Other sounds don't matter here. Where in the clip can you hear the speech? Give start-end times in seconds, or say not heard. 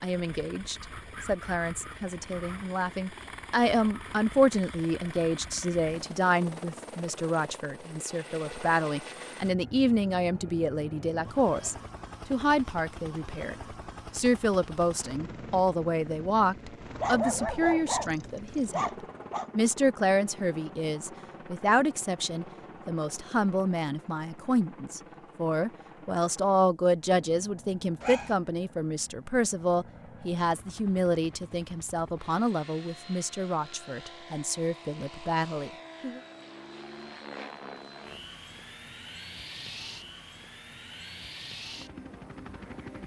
0.0-18.9, 19.6-36.2.